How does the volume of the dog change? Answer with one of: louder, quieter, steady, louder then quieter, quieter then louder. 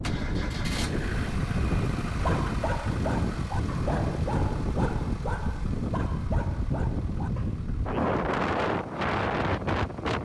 quieter.